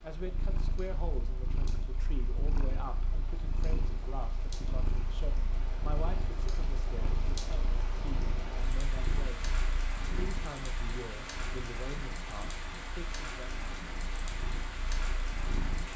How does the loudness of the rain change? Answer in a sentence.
The loudness of the rain goes up.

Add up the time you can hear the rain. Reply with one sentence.
The rain can be heard for 16 seconds in total.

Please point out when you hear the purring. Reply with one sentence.
You can hear the purring from 0.1 to 15.9 s.